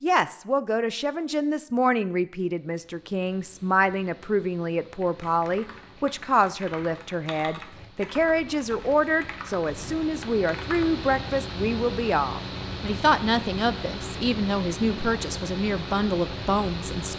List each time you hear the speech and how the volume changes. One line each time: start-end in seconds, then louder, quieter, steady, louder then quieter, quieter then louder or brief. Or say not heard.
0.0-17.1 steady.